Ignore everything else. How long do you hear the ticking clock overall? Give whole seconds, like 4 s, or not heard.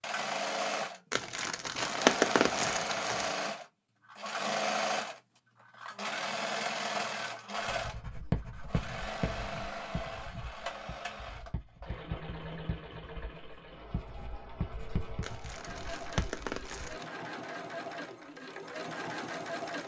not heard.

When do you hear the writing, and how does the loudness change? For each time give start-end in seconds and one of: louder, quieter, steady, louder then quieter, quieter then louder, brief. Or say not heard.
7.7-16.9 quieter then louder.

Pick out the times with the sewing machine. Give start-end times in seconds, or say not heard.
0.0-19.8.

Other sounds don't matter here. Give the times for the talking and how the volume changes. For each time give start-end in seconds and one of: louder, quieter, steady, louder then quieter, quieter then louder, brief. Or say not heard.
not heard.